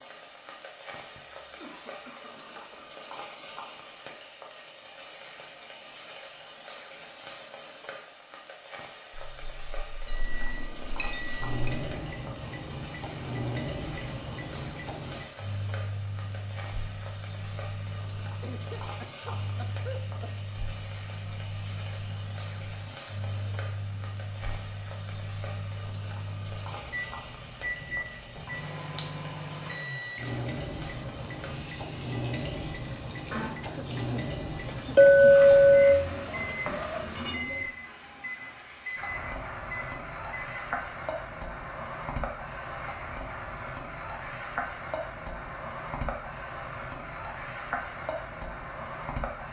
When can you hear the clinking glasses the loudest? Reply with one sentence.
The volume of the clinking glasses peaks at 35 seconds.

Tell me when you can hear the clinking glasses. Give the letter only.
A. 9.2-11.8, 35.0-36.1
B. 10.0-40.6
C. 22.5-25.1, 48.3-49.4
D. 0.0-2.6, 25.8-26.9
A.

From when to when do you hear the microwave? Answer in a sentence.
You can hear the microwave from 10.0 to 40.6 s.